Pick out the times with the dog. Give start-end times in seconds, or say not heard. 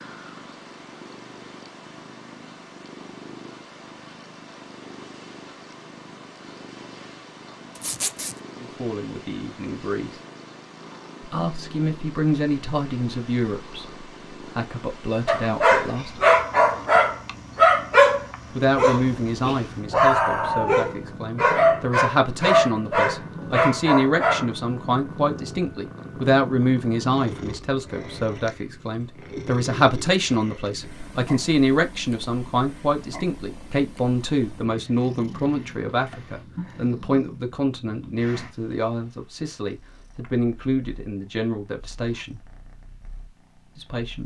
15.2-24.5.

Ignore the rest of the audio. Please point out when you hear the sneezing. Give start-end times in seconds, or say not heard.
not heard.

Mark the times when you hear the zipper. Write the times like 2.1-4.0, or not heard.
7.8-8.3.